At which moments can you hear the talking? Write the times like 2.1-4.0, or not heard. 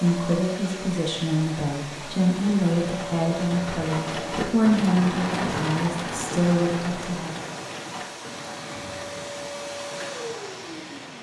0.0-7.4.